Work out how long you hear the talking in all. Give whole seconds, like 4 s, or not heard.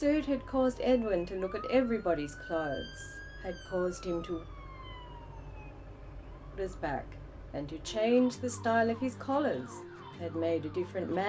9 s.